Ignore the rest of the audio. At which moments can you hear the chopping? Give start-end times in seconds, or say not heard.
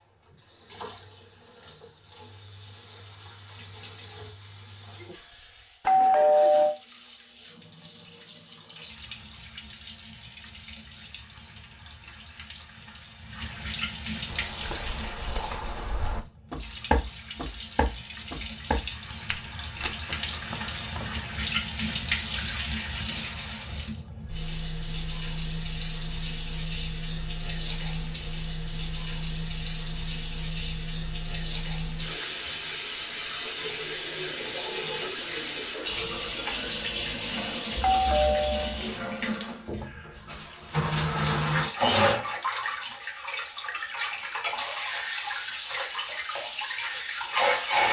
not heard.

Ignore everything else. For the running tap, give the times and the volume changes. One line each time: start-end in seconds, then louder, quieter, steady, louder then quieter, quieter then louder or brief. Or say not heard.
0.0-47.8 louder.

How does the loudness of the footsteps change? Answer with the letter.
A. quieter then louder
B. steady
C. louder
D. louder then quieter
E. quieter
D.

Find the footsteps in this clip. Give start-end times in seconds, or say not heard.
14.2-21.5.